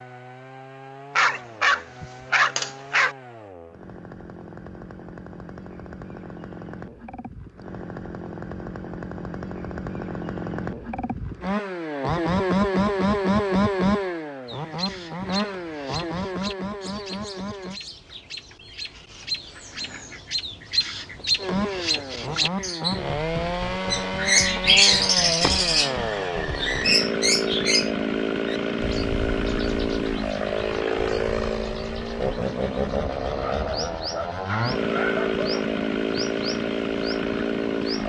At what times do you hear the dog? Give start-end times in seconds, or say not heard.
1.1-3.1, 33.3-35.8.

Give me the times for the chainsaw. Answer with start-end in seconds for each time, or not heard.
0.0-17.8, 21.4-38.0.